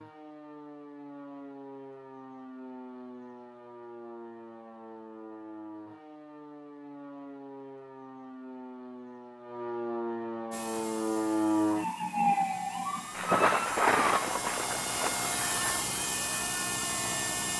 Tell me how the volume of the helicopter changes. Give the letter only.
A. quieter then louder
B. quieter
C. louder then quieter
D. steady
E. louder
E.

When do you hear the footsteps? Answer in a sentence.
The footsteps can't be heard in this clip.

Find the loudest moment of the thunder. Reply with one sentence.
The loudest moment of the thunder is at 14 seconds.